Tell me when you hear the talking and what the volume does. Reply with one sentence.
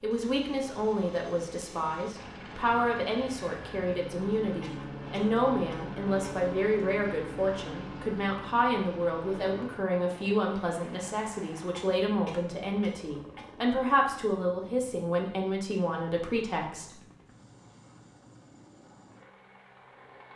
The talking can be heard from 0.0 to 16.9 s, at a steady volume.